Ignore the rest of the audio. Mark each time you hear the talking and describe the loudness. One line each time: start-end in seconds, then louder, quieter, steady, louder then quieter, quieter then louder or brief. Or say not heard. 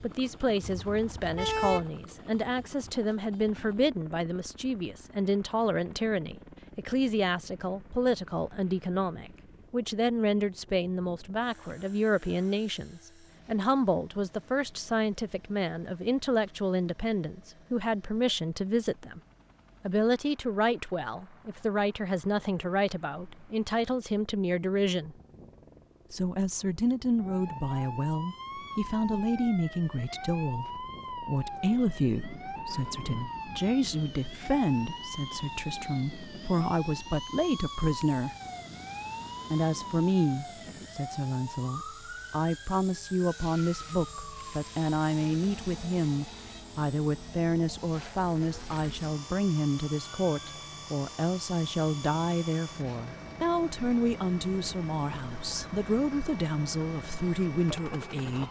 0.0-19.2 steady
19.8-25.1 steady
26.1-38.4 steady
39.5-58.4 steady.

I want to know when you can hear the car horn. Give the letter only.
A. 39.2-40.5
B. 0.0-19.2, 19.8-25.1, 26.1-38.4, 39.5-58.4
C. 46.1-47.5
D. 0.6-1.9
D.